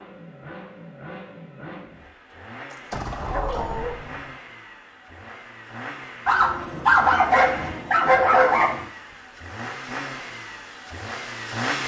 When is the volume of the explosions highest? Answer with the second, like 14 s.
3 s.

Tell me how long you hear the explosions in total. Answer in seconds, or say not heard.
2 s.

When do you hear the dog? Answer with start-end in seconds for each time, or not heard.
3.3-4.0, 6.2-8.8.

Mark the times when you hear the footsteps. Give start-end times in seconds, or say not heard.
not heard.